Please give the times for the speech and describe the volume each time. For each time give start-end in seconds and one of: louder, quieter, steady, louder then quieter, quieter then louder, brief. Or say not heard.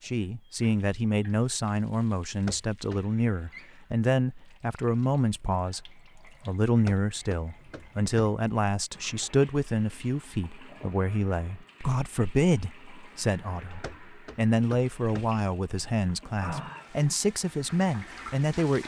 0.0-18.8 steady.